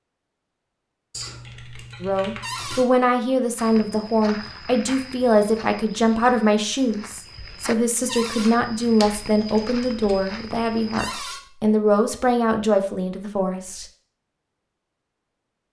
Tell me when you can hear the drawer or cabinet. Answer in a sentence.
The drawer or cabinet can be heard from 2.4 to 2.9 s, from 8.1 to 8.5 s and from 10.9 to 11.4 s.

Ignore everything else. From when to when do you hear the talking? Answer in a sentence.
You can hear the talking from 2.0 to 13.8 s.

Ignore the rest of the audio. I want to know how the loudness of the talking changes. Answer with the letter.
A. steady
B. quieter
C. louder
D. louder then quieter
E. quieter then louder
A.